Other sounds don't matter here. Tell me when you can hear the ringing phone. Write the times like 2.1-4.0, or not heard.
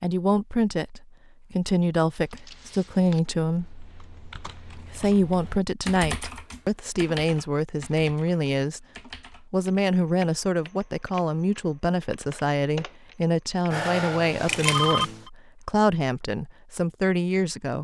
13.7-15.3.